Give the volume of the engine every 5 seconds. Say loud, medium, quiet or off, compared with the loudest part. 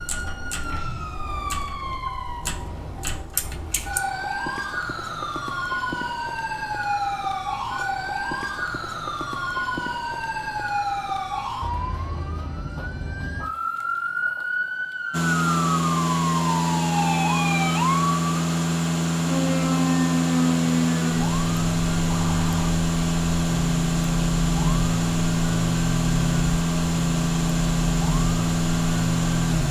off, off, off, loud, loud, loud.